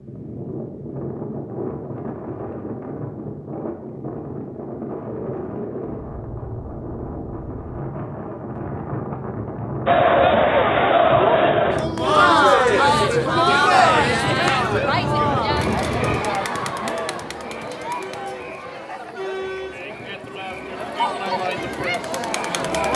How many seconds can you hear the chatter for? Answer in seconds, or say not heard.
13 s.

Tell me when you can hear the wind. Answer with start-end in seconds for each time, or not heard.
0.0-16.2.